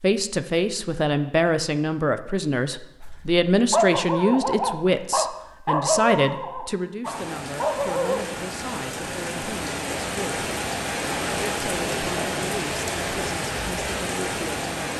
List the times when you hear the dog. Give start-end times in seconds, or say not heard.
3.0-8.2.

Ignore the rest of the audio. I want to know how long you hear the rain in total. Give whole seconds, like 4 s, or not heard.
8 s.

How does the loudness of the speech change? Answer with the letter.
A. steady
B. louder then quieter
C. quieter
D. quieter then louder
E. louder
C.